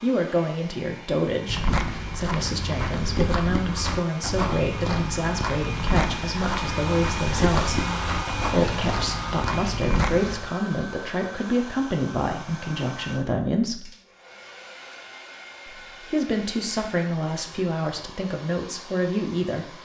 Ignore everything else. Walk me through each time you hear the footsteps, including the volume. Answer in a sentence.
You can hear the footsteps from 1.4 to 10.4 s, at a steady volume.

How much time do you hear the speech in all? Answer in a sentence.
You can hear the speech for 18 seconds altogether.